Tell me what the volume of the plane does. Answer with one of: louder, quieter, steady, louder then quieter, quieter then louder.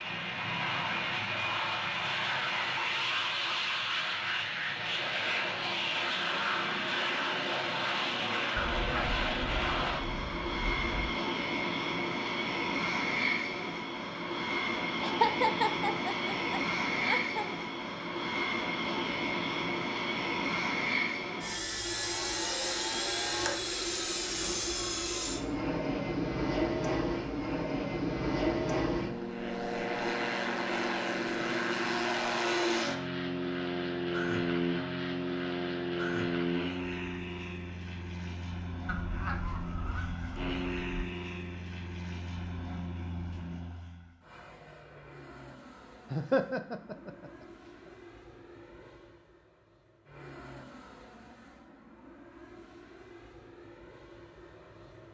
quieter.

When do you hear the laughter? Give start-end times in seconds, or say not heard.
15.0-17.4, 46.1-47.5.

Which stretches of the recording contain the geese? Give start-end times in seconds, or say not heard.
8.6-11.2, 38.9-41.0.